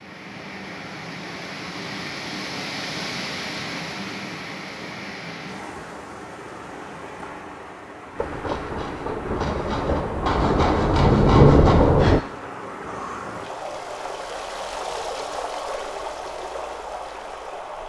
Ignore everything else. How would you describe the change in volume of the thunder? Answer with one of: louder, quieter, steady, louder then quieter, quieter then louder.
louder.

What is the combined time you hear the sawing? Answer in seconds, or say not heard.
4 s.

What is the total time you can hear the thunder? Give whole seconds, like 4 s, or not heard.
4 s.